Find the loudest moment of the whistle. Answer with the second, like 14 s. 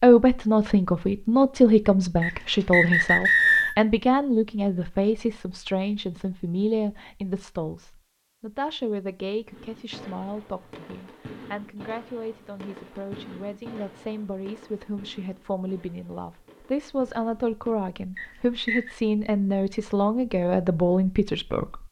3 s.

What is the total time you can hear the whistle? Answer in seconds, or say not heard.
2 s.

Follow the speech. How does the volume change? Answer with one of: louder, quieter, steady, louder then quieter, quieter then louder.
quieter then louder.